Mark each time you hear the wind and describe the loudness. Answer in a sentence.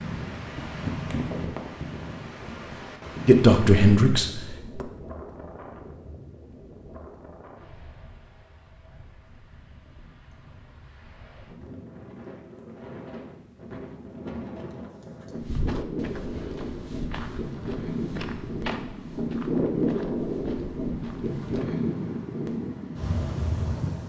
You can hear the wind from 0.0 to 24.0 s, getting quieter then louder.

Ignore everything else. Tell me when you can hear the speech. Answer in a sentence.
The speech can be heard from 3.2 to 4.8 s.